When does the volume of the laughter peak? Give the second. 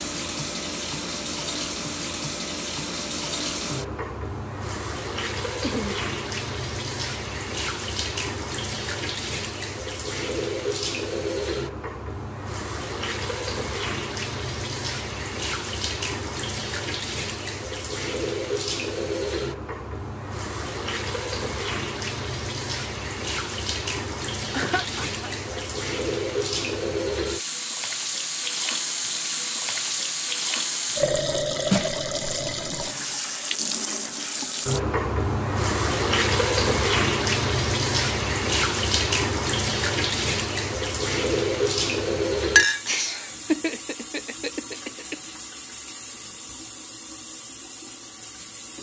44 s.